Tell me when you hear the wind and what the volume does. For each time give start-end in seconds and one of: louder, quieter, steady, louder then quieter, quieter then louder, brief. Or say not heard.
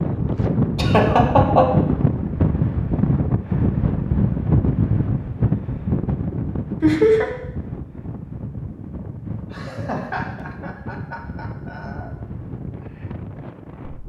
0.0-14.0 quieter.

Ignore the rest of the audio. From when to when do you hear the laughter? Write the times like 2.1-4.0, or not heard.
0.8-1.7, 6.8-7.3, 9.5-12.1.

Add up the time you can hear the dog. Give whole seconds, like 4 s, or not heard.
not heard.